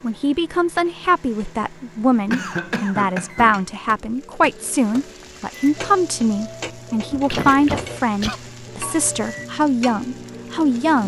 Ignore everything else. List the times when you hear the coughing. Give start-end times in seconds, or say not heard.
2.3-3.6, 7.2-8.4.